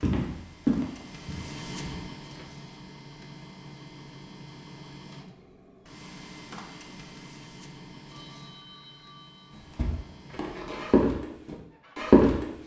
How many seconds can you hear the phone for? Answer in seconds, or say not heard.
2 s.